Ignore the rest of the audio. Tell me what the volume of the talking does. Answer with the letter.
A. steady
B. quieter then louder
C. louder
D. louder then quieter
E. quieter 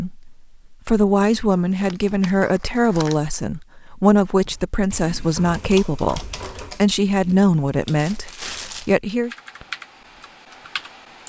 A.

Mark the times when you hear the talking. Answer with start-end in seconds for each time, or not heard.
0.0-9.3.